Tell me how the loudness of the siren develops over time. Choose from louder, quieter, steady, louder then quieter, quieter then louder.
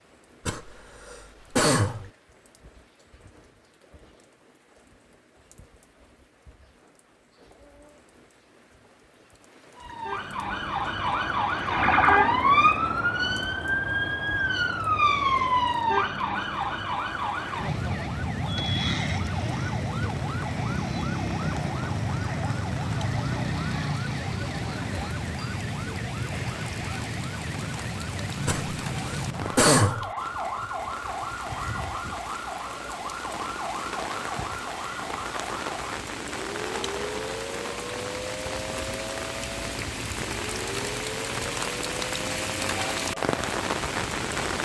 quieter.